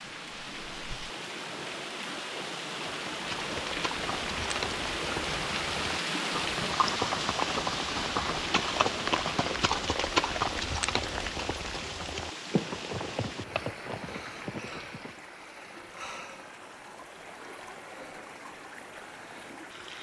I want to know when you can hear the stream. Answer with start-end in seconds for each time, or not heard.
0.0-19.9.